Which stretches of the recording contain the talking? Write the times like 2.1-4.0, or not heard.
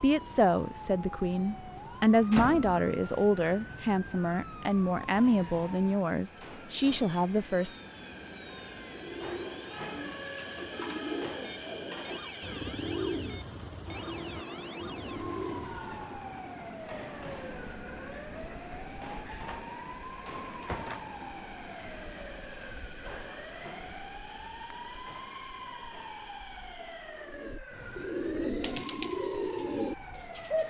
0.0-7.8.